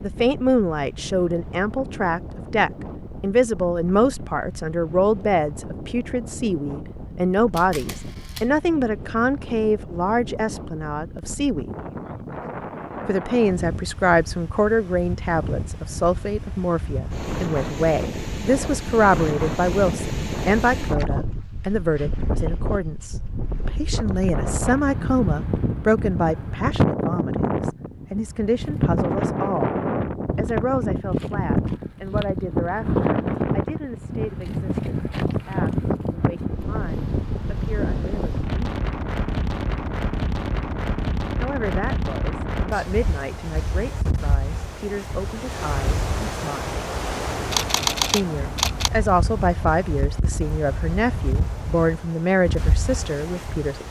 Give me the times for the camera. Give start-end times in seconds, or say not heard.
7.5-8.5, 47.5-48.9.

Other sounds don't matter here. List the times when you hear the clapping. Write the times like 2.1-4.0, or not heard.
not heard.